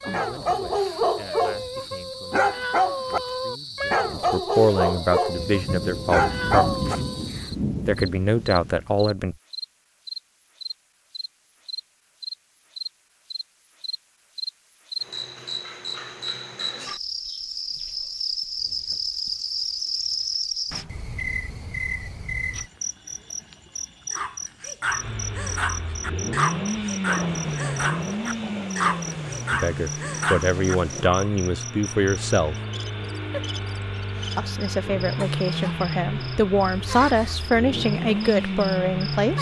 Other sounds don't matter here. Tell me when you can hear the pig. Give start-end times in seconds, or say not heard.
not heard.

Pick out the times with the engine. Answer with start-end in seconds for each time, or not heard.
24.8-39.3.